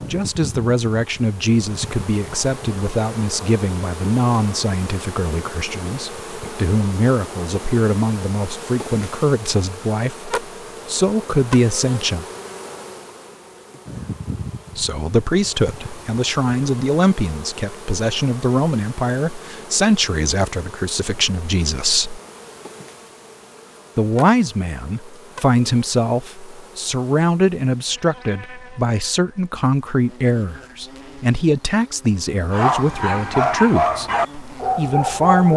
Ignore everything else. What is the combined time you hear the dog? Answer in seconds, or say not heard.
3 s.